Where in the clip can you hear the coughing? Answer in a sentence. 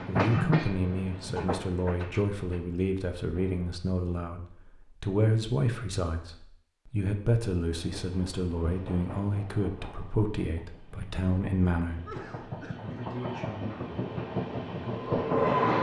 The coughing can be heard from 12.0 to 12.8 s.